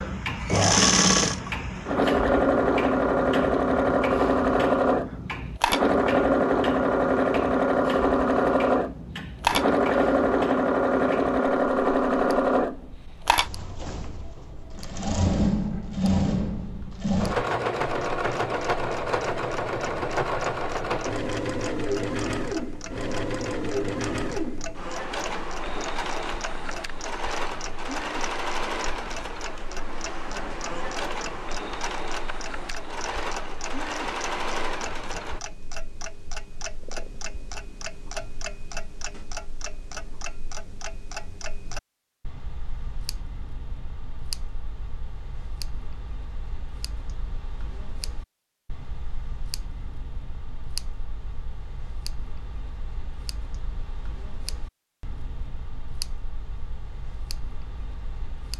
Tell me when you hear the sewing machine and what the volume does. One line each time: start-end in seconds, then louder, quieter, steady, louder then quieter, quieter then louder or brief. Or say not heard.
0.0-35.4 quieter.